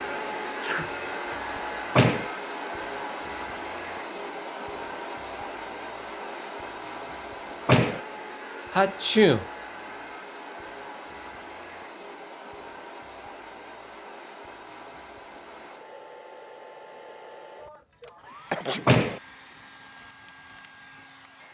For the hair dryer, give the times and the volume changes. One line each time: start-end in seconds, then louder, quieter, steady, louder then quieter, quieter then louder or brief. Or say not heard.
0.0-21.5 quieter.